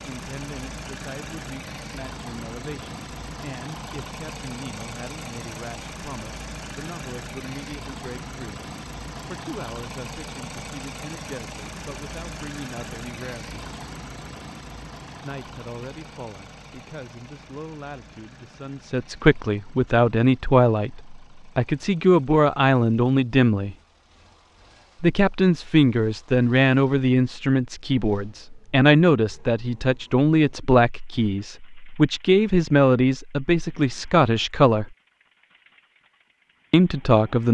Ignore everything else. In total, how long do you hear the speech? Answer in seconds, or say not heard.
33 s.